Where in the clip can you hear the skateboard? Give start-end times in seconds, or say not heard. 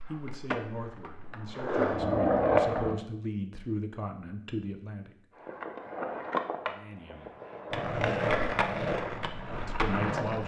0.0-3.0, 5.4-10.4.